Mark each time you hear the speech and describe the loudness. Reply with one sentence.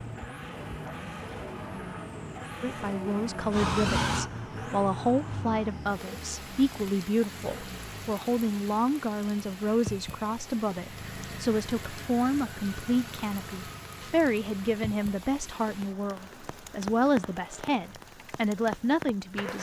The speech can be heard from 2.6 to 19.5 s, at a steady volume.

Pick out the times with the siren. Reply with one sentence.
The siren can be heard from 3.5 to 5.8 s.